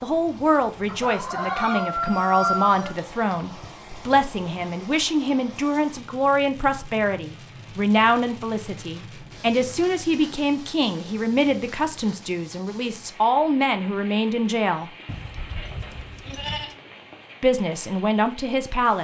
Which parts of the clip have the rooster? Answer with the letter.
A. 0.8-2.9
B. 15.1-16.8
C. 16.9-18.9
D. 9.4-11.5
A.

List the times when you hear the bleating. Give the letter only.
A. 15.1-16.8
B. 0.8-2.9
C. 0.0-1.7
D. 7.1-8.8
A.